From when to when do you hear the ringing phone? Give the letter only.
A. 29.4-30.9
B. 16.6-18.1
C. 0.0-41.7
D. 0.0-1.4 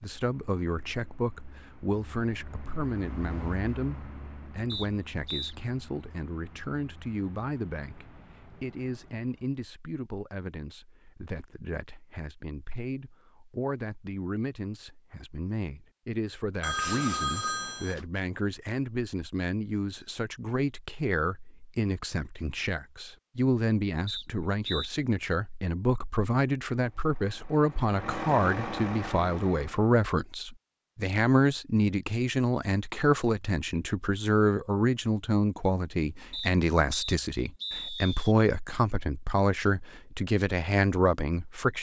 B.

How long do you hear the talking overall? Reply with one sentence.
The talking can be heard for 42 seconds in total.